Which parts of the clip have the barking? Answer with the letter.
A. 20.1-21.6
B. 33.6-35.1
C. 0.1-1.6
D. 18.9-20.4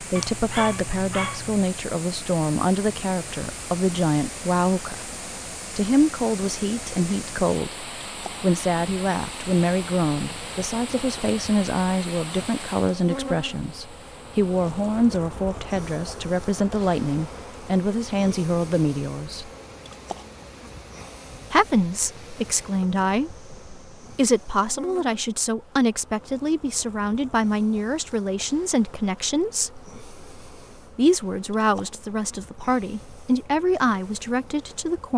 C.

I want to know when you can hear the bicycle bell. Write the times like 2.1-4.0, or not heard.
not heard.